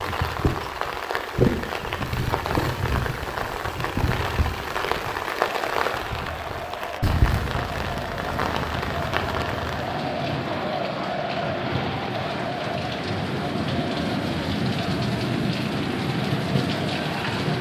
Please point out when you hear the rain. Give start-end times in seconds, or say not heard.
0.0-17.5.